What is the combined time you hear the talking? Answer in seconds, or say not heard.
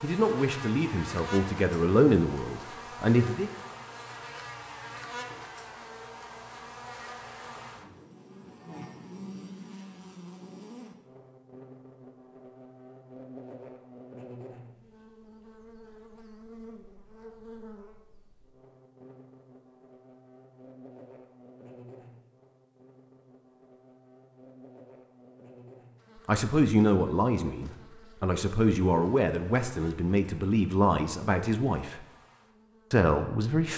10 s.